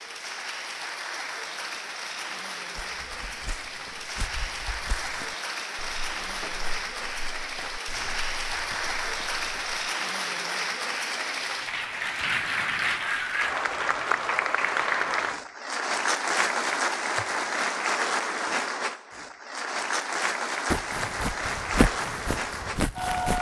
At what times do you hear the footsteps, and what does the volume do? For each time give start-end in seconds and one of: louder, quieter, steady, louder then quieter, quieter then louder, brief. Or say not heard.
2.8-9.8 steady
20.7-23.3 brief.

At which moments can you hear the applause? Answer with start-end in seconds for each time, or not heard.
0.0-23.3.